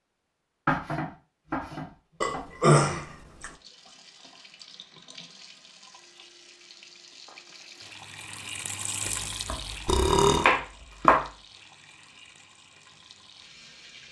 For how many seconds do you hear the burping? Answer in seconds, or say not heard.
2 s.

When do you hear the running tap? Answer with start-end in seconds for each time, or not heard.
3.4-14.0.